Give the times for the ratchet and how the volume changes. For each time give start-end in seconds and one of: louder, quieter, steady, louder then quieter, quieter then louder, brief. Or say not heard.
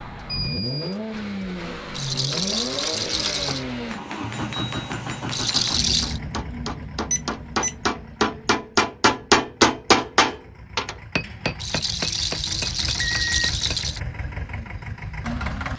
not heard.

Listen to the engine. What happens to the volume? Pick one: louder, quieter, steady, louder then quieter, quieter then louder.
quieter then louder.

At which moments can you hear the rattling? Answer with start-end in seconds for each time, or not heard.
1.9-3.6, 5.3-6.2, 11.6-14.0.